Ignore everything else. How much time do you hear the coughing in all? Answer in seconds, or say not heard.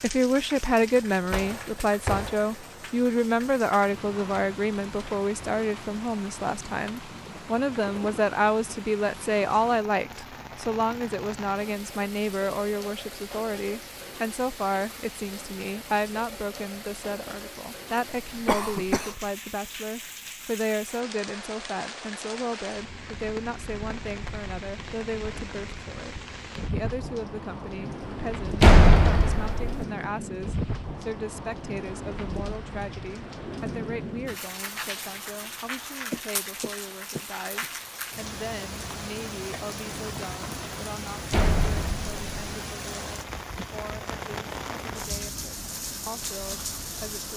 3 s.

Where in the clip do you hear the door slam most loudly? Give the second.
29 s.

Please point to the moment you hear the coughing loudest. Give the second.
19 s.